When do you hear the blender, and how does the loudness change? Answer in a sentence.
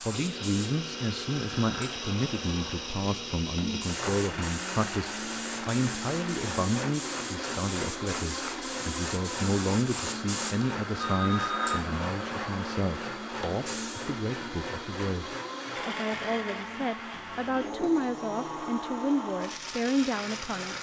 The blender can be heard from 0.0 to 20.7 s, at a steady volume.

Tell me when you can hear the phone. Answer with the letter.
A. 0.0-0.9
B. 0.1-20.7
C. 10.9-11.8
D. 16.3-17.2
C.